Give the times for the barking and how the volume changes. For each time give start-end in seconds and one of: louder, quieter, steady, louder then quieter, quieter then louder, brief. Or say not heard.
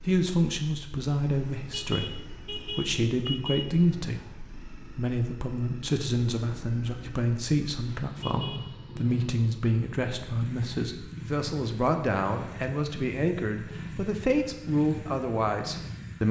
not heard.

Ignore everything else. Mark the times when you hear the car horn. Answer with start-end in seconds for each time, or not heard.
1.7-4.5, 8.2-9.0.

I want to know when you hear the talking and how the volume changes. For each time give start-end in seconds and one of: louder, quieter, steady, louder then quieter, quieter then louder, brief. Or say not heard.
0.1-16.2 steady.